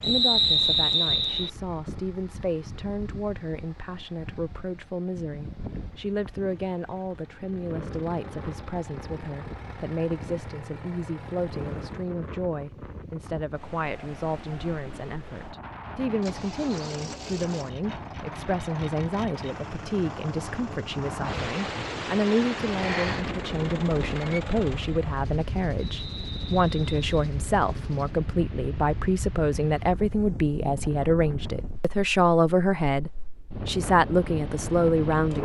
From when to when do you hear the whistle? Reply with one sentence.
The whistle can be heard from 0.0 to 1.5 s and from 25.9 to 27.1 s.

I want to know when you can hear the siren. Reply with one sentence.
The siren can't be heard in this clip.